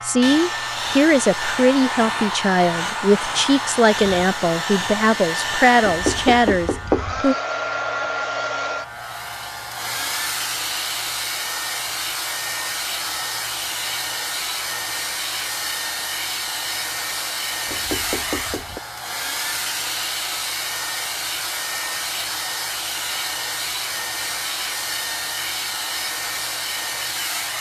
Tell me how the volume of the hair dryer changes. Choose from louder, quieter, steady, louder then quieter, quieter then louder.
steady.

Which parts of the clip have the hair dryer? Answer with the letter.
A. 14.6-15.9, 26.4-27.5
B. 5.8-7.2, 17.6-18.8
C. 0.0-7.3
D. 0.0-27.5
D.